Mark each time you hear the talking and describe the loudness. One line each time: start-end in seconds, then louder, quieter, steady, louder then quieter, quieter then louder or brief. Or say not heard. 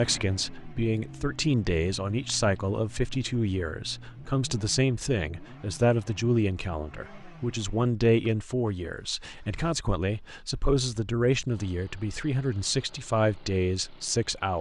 0.0-14.5 steady.